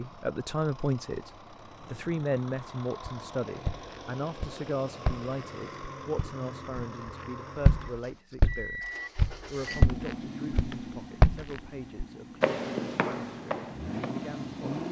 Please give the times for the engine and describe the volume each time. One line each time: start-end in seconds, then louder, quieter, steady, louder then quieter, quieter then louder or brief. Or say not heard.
0.0-14.8 louder.